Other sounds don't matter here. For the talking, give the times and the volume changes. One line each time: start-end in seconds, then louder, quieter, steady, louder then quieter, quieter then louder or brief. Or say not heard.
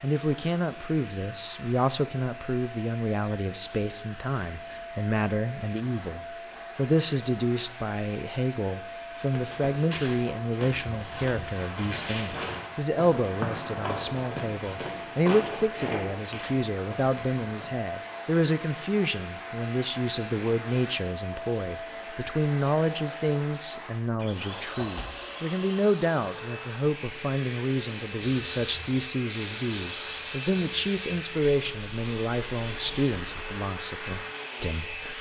0.0-35.1 steady.